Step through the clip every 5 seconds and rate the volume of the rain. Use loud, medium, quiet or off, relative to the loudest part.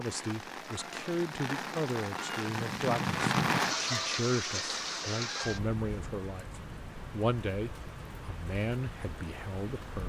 loud, medium.